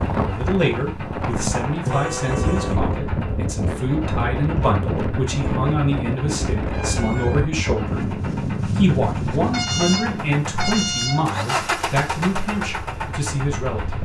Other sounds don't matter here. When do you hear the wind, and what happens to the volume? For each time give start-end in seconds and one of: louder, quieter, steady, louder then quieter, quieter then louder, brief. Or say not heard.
0.0-14.0 quieter.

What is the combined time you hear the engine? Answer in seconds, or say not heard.
14 s.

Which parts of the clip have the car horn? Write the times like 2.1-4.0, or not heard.
1.8-2.8, 6.7-7.5, 9.5-11.3.